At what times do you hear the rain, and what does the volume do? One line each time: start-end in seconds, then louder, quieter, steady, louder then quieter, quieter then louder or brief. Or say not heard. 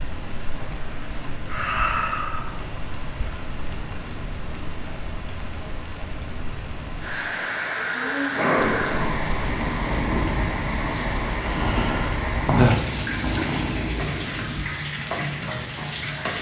0.0-16.3 louder.